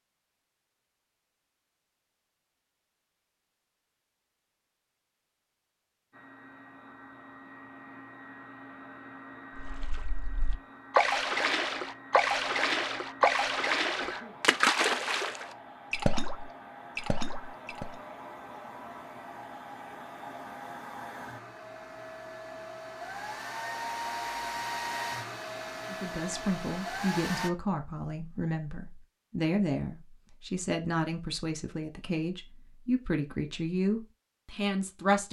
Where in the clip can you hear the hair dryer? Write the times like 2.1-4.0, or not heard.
6.1-27.5.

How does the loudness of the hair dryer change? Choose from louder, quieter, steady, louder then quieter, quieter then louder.
louder.